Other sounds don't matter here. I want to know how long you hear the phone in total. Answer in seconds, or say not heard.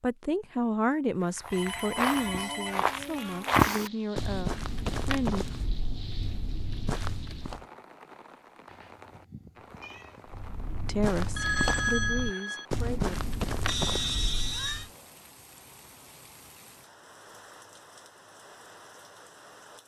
3 s.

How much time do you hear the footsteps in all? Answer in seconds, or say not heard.
11 s.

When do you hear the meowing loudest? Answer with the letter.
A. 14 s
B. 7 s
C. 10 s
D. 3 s
A.